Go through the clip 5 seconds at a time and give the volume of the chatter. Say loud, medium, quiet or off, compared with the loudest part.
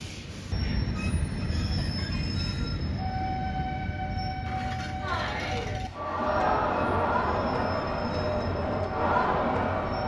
off, loud.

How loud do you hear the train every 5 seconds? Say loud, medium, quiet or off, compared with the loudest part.
loud, medium.